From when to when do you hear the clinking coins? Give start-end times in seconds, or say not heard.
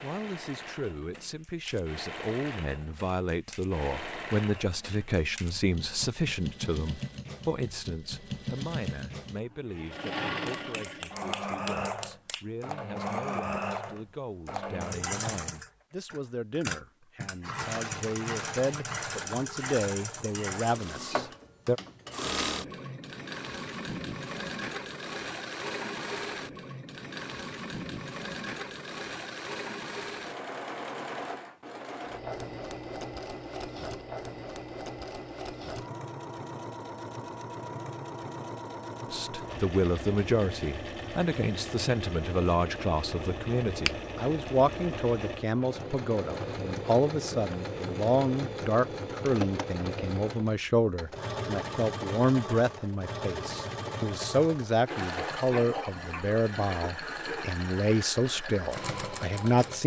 not heard.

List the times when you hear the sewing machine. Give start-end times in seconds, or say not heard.
0.0-59.8.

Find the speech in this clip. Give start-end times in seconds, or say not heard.
0.0-21.8, 39.1-59.8.